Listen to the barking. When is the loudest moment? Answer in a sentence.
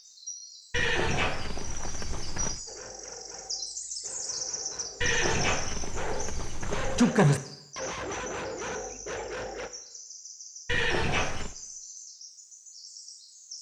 The volume of the barking peaks at 7 seconds.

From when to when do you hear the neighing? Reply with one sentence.
The neighing can be heard from 0.7 to 2.6 s, from 5.0 to 7.0 s and from 10.7 to 11.6 s.